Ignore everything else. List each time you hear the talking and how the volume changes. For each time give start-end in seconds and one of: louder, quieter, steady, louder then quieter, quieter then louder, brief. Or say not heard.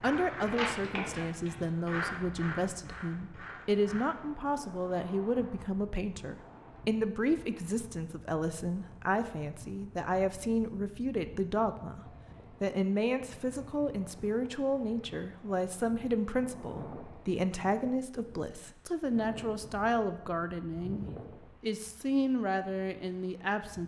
0.0-23.8 steady.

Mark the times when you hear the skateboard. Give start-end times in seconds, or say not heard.
0.0-5.8.